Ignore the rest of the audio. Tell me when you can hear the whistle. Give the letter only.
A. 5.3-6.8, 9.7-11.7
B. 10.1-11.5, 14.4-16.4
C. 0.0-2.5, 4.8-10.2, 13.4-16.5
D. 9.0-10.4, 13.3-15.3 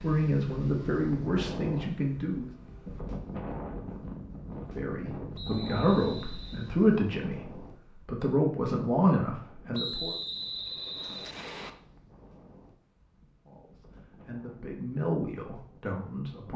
A.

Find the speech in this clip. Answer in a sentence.
The speech can be heard from 0.0 to 2.5 s, from 4.8 to 10.2 s and from 13.4 to 16.5 s.